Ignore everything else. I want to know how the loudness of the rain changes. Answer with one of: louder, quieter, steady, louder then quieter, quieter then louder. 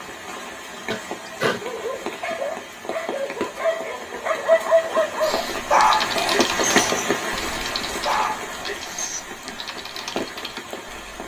louder then quieter.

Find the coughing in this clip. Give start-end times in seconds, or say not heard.
0.9-1.6, 6.1-7.0.